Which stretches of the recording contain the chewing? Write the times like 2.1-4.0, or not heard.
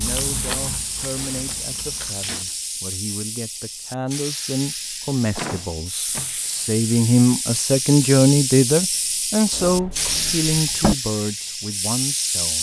0.0-2.6.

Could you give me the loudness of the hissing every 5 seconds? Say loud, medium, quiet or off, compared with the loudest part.
medium, loud, loud.